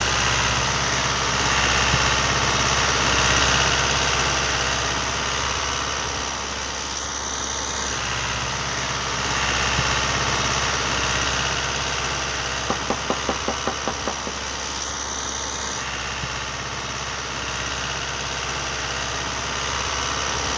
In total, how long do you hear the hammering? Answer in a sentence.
You can hear the hammering for 2 seconds altogether.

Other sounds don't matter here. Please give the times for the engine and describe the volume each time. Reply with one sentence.
You can hear the engine from 0.0 to 20.5 s, getting quieter.